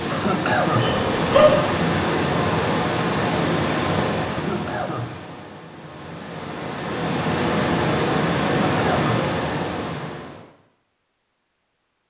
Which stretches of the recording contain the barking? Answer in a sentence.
The barking can be heard from 0.7 to 1.7 s.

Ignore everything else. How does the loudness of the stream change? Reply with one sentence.
The volume of the stream goes down, then up.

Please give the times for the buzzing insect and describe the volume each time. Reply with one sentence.
You can't hear the buzzing insect here.